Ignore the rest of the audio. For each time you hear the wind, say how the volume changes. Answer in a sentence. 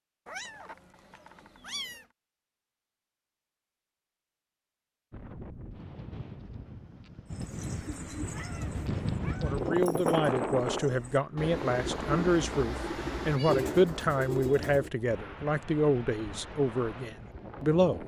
You can hear the wind from 5.1 to 18.0 s, getting louder then quieter.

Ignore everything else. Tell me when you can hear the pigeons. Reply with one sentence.
You can hear the pigeons from 7.3 to 14.9 s.